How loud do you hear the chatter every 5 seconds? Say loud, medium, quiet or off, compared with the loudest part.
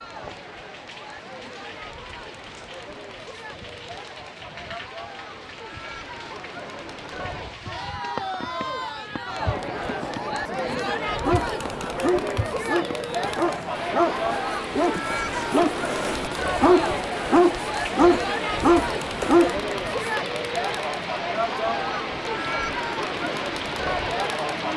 quiet, medium, loud, loud, loud.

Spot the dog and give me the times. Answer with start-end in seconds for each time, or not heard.
11.2-19.6.